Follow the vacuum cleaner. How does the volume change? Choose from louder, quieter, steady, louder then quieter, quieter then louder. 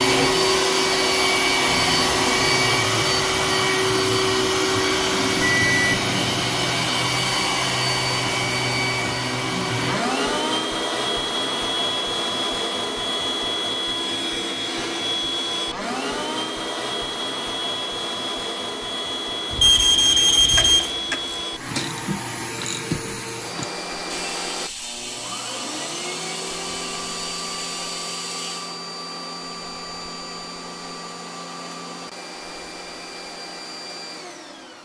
quieter.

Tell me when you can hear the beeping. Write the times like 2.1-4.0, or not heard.
5.1-6.5, 19.5-20.9.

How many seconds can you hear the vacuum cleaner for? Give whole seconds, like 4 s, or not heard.
35 s.